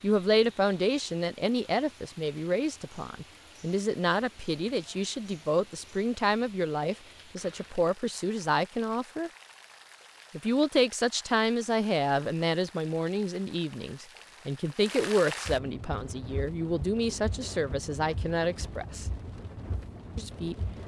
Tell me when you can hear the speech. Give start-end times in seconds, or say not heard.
0.0-9.3, 10.3-19.1, 20.1-20.6.